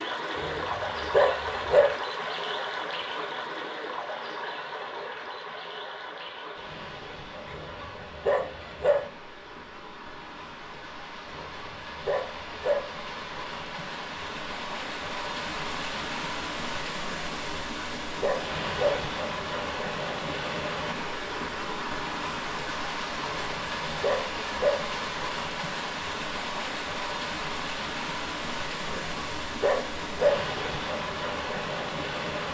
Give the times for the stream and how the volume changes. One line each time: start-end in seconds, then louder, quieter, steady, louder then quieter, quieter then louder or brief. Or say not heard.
0.0-32.4 quieter then louder.